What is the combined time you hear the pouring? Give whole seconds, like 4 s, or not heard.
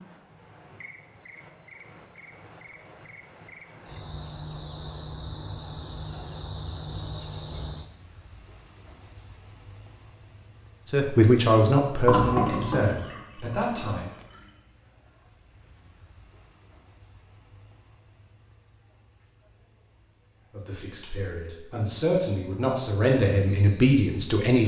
2 s.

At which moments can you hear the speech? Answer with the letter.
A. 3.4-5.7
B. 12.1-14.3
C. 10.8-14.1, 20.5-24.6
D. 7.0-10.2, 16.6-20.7
C.